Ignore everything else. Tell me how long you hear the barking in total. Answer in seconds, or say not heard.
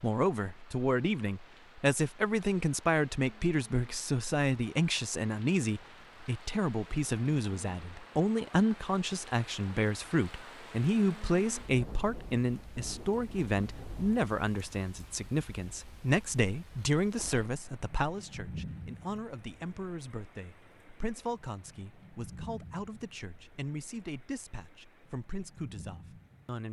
not heard.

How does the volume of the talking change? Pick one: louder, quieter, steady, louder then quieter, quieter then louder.
quieter.